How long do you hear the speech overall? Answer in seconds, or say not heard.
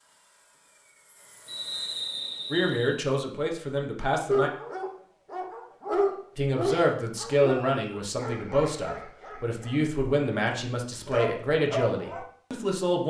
9 s.